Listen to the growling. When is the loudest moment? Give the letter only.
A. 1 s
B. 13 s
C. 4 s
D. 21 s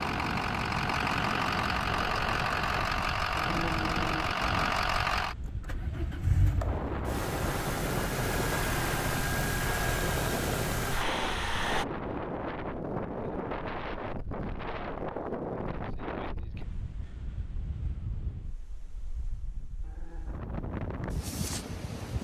C.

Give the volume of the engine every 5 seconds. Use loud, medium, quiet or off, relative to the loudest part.
loud, loud, loud, off, off.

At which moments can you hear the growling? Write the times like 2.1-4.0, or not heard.
3.4-4.7, 19.8-20.4.